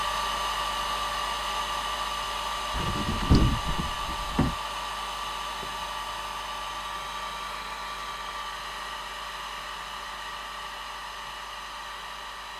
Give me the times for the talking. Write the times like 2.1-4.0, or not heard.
not heard.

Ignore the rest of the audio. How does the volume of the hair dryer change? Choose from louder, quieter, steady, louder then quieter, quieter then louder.
quieter.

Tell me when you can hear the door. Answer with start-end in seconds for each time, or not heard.
2.7-4.5.